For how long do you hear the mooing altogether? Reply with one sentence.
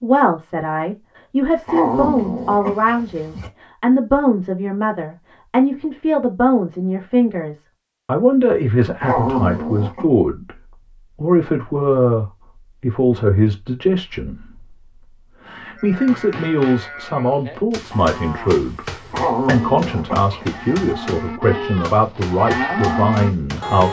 You can hear the mooing for 8 seconds altogether.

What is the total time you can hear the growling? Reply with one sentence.
You can hear the growling for 5 seconds altogether.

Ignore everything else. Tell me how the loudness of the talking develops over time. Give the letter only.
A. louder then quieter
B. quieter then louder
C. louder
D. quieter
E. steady
E.